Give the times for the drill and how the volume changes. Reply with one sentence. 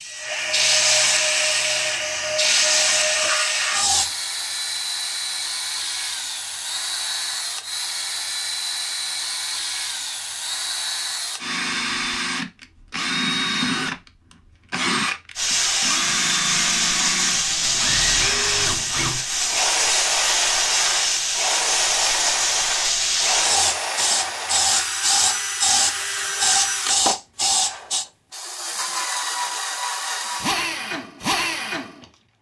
The drill can be heard from 0.1 to 32.1 s, at a steady volume.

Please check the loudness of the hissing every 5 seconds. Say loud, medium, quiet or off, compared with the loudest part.
loud, off, off, loud, loud, loud, off.